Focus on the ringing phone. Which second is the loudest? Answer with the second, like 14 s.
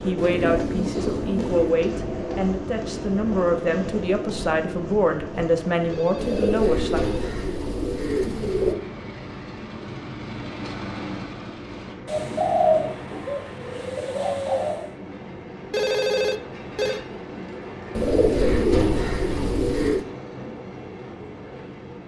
16 s.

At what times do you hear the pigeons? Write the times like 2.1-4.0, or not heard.
0.1-1.8, 6.2-8.8, 12.1-14.9, 17.9-20.1.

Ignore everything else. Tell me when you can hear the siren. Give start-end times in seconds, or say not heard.
not heard.